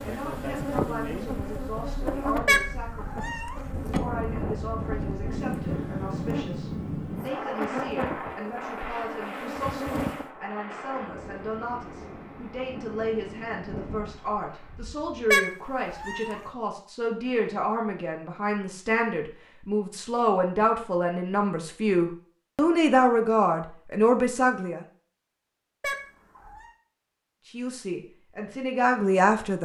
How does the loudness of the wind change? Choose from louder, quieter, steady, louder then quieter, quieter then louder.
louder then quieter.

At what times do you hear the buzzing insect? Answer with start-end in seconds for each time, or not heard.
0.0-10.3.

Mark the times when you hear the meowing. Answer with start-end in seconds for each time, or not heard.
2.5-4.0, 15.3-16.4, 25.8-26.7.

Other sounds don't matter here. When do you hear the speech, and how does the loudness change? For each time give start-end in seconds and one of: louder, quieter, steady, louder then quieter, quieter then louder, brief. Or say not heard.
0.0-24.8 louder
27.6-29.5 brief.